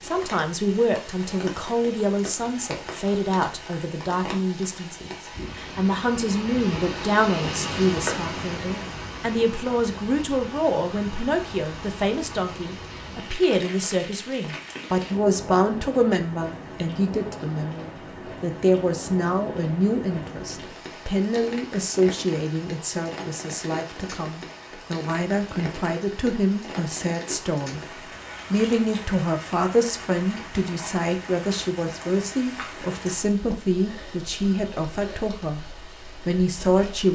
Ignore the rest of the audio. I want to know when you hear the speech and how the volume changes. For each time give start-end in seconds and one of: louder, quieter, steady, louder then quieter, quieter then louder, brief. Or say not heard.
0.0-27.8 steady
28.5-35.6 steady
36.2-37.1 brief.